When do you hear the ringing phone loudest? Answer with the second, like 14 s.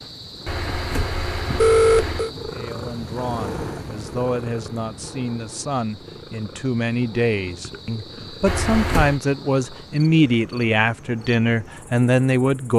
2 s.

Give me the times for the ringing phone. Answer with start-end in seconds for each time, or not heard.
0.5-2.3, 8.4-9.2.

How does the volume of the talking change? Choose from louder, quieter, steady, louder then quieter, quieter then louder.
louder.